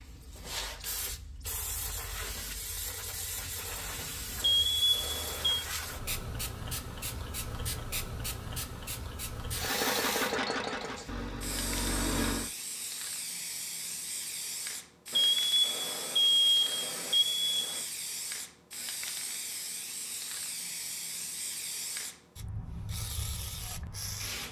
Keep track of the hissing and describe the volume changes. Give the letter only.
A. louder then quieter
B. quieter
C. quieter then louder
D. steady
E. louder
D.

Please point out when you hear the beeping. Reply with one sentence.
The beeping can be heard from 4.4 to 5.7 s and from 15.1 to 17.9 s.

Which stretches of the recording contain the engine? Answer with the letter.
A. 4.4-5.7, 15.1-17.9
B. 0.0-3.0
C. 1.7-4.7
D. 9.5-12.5
D.